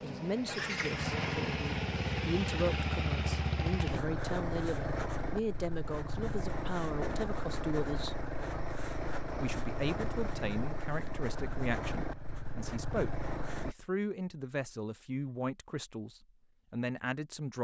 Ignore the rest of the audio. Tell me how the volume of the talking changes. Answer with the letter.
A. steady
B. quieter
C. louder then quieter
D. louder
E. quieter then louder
A.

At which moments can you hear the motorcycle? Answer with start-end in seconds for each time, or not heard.
0.0-13.8.